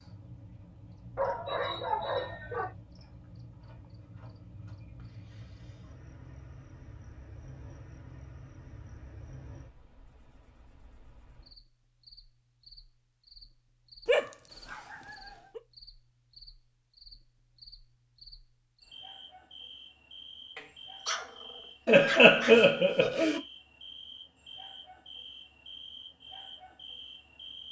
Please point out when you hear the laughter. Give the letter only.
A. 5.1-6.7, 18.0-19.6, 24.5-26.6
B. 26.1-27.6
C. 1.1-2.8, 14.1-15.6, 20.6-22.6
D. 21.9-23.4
D.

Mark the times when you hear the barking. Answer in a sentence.
You can hear the barking from 1.1 to 2.8 s, from 14.1 to 15.6 s and from 20.6 to 22.6 s.